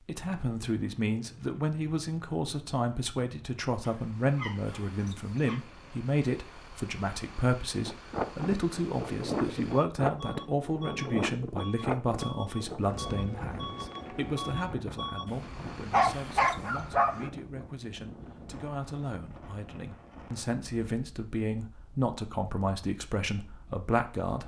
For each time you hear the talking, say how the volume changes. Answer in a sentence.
The talking can be heard from 0.1 to 24.4 s, getting quieter then louder.